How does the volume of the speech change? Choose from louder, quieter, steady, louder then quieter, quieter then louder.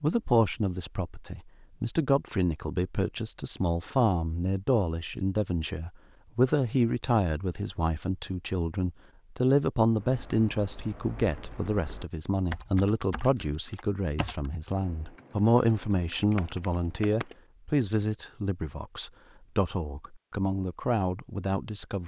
steady.